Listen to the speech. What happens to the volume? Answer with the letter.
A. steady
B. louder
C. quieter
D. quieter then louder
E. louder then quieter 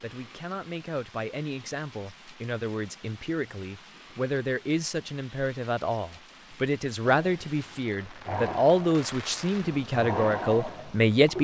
B.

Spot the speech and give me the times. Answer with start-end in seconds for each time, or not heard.
0.0-11.3.